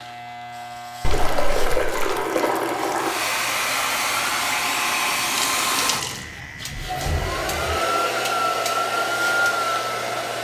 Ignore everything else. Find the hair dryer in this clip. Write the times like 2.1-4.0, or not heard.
3.0-10.3.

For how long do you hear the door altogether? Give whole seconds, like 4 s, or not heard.
2 s.